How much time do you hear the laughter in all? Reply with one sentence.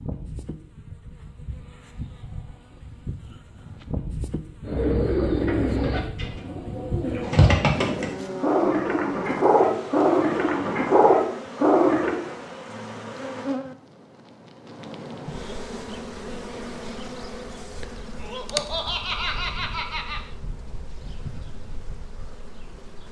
The laughter can be heard for 2 seconds in total.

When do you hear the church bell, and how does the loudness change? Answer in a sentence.
You can't hear the church bell here.